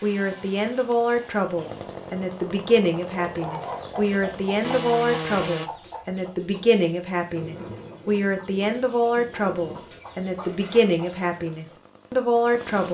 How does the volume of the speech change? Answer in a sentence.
The volume of the speech stays about the same.